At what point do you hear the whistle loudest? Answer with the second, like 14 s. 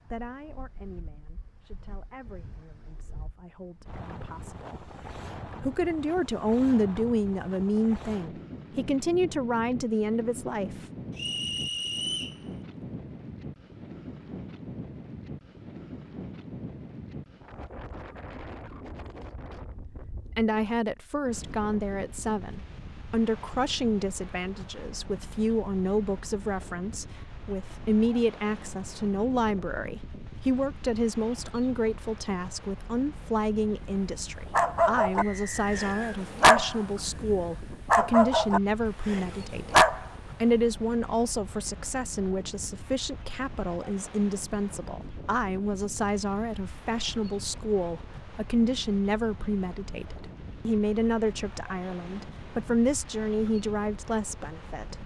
12 s.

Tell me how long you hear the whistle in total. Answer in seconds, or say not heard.
2 s.